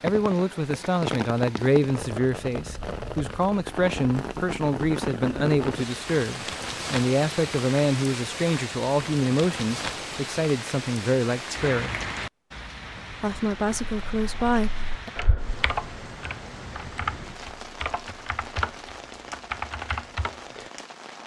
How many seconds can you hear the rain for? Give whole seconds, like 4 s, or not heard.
21 s.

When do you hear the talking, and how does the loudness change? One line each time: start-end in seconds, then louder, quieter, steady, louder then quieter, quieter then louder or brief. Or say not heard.
0.0-12.0 steady
13.1-15.1 brief.